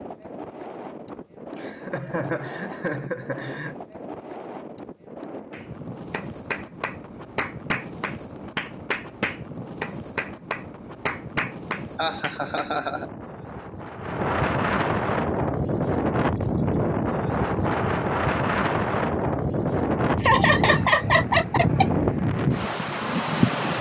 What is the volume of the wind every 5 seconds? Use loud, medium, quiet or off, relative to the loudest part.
quiet, quiet, medium, loud, loud.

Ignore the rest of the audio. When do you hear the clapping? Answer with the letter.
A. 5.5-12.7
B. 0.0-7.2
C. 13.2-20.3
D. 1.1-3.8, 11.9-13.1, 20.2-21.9
A.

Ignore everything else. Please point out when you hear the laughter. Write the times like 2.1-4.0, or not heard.
1.1-3.8, 11.9-13.1, 20.2-21.9.